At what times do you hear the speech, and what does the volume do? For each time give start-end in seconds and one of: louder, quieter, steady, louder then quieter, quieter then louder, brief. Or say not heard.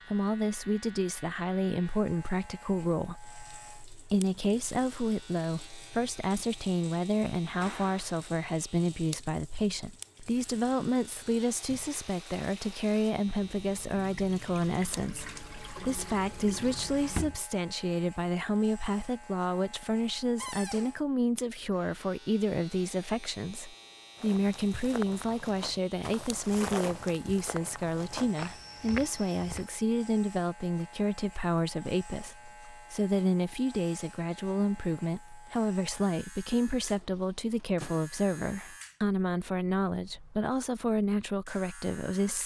0.1-42.4 steady.